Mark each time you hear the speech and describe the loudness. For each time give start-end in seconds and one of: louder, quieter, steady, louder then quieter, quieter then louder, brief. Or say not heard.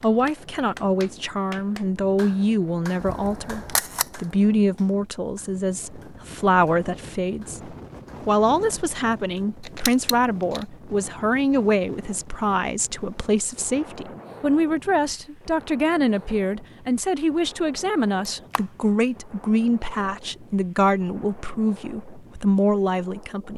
0.0-23.5 steady.